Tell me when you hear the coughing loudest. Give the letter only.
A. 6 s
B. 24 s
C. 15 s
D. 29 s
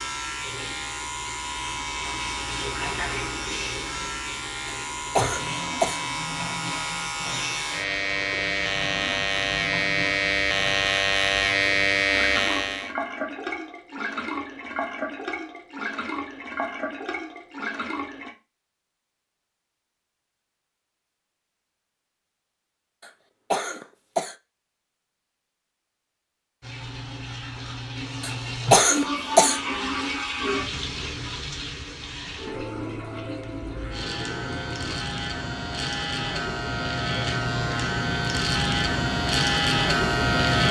D.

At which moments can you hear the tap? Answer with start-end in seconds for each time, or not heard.
0.0-18.3, 26.6-35.0.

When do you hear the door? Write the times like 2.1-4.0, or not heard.
not heard.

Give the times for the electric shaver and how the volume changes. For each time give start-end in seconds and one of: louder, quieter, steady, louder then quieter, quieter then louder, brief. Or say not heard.
0.0-12.9 louder
33.4-40.6 louder.